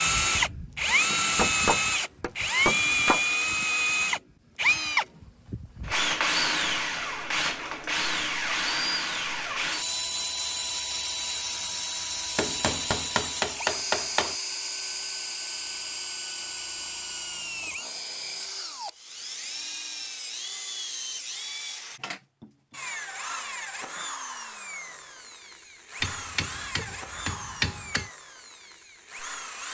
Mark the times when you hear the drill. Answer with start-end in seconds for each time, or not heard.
0.0-29.6.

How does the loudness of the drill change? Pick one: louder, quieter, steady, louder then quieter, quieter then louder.
quieter.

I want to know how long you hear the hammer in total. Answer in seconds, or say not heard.
6 s.